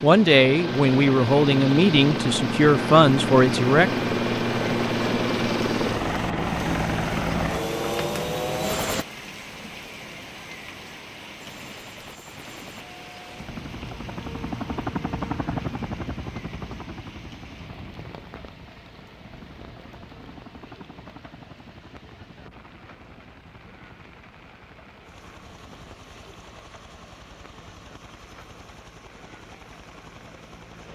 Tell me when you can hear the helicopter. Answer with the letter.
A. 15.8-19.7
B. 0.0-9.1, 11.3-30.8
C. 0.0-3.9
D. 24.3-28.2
B.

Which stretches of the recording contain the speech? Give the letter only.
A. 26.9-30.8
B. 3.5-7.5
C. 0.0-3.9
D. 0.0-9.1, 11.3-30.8
C.